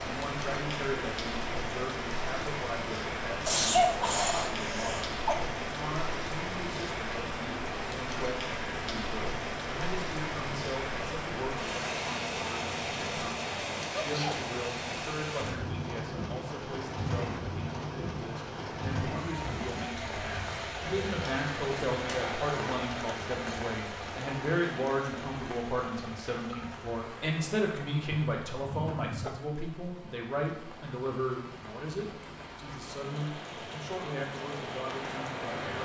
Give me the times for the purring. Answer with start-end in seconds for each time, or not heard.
not heard.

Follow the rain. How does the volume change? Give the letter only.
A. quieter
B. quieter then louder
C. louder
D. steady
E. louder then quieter
A.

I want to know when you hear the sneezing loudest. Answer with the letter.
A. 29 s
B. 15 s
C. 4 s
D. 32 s
C.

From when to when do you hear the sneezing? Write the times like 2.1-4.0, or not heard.
3.5-5.3, 13.9-14.4, 28.4-29.3.